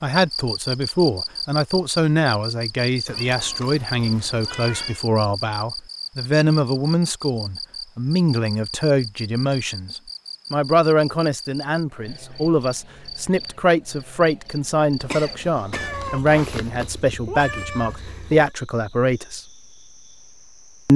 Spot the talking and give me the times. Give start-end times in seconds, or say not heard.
0.0-9.9, 10.5-19.4.